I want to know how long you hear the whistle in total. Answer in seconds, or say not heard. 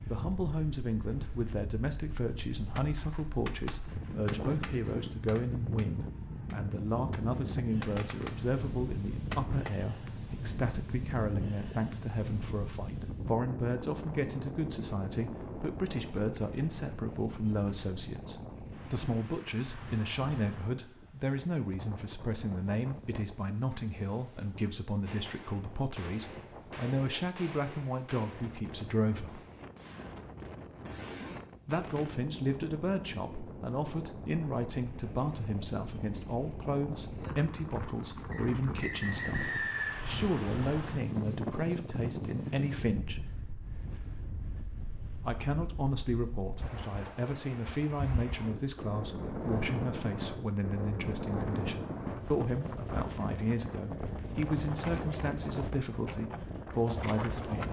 2 s.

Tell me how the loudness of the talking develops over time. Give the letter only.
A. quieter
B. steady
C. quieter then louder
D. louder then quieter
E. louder
B.